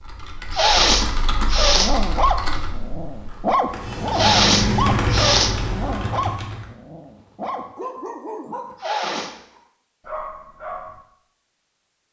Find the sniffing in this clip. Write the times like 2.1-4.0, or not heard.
0.5-1.9, 4.2-5.5, 8.8-9.3.